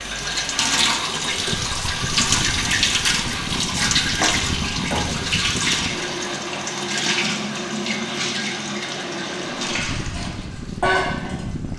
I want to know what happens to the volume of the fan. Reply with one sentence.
The volume of the fan stays about the same.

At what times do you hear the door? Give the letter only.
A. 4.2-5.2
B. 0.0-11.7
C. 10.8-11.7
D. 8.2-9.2
A.